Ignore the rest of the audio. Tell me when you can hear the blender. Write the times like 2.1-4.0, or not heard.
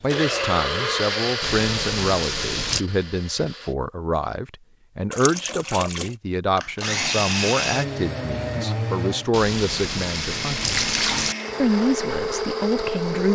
0.0-3.8, 6.5-13.2.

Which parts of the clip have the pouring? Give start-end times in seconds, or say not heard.
1.4-2.9, 5.1-6.2, 9.3-11.3.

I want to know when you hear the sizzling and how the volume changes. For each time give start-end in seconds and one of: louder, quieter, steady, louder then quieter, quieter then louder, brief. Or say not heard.
not heard.